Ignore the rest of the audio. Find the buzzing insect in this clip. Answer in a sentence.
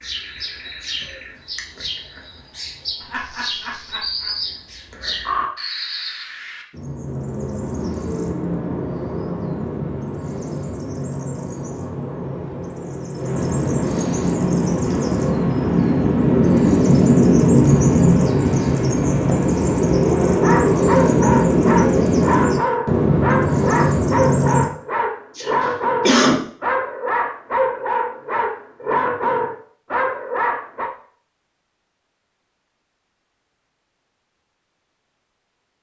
You can't hear the buzzing insect here.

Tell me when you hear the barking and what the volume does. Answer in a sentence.
The barking can be heard from 20.2 to 30.9 s, at a steady volume.